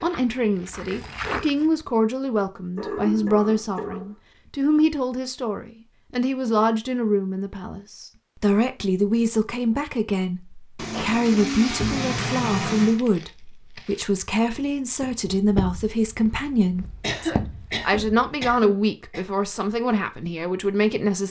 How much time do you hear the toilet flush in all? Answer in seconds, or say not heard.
2 s.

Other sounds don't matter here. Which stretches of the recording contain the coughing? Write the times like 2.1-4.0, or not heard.
2.8-4.1, 17.0-19.2.